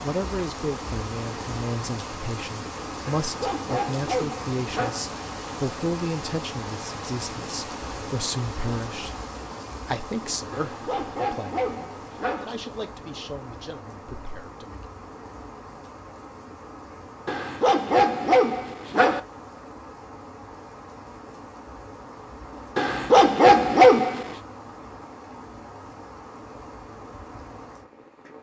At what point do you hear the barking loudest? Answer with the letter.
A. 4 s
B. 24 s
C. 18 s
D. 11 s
B.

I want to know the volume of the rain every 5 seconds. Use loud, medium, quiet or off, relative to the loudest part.
loud, loud, medium, medium, medium, medium.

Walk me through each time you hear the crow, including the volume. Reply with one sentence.
The crow can't be heard in this clip.